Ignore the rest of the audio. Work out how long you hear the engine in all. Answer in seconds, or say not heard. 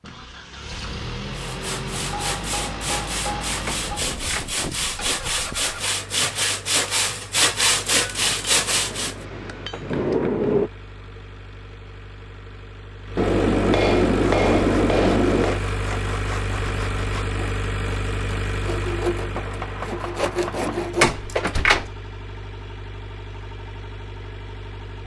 25 s.